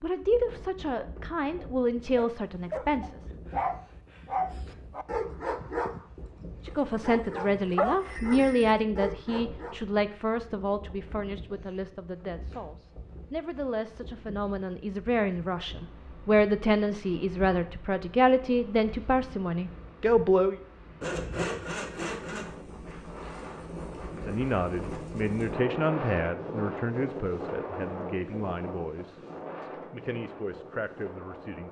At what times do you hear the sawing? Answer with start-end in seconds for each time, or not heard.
21.0-22.4.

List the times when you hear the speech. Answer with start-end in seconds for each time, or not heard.
0.0-3.2, 6.7-20.6, 24.2-31.6.